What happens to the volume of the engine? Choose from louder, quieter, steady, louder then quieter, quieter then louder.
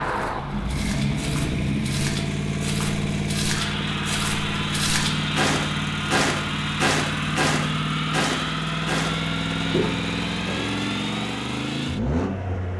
steady.